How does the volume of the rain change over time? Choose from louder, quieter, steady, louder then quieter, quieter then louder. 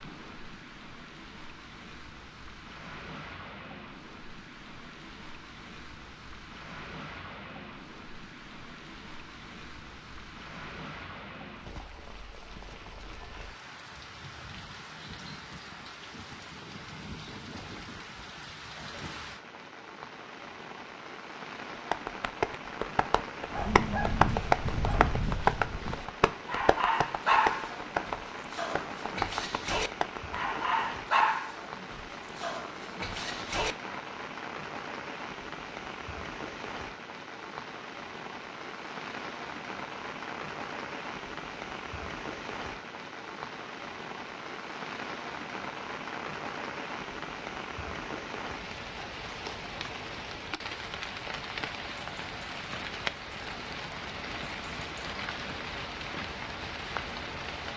louder.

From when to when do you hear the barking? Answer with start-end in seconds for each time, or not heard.
23.4-34.0.